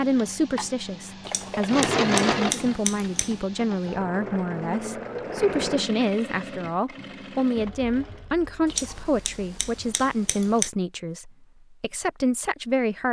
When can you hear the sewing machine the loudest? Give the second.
2 s.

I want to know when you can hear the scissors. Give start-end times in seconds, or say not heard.
1.2-3.4, 8.7-10.7.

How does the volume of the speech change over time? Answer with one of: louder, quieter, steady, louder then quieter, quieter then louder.
steady.